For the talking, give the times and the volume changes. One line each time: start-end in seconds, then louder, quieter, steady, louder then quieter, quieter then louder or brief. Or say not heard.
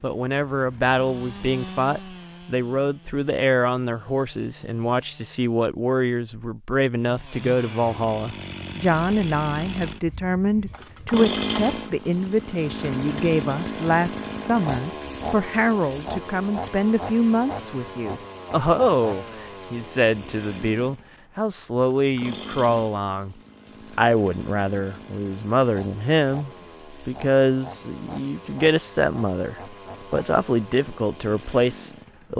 0.0-23.4 steady
23.9-32.3 steady.